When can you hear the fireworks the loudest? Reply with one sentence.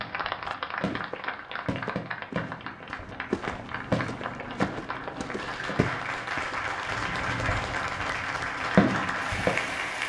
The volume of the fireworks peaks at 9 seconds.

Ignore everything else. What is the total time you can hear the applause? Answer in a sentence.
The applause can be heard for 10 seconds in total.